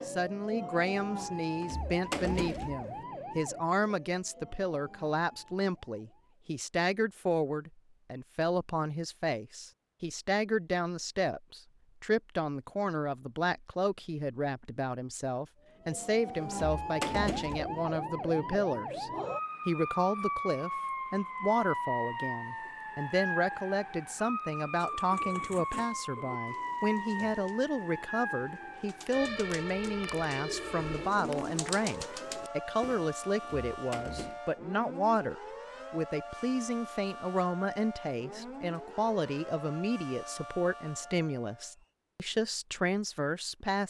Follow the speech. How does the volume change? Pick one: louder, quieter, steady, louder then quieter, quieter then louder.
steady.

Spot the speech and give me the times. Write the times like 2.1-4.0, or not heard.
0.1-43.8.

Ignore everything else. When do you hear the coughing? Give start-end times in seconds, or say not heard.
not heard.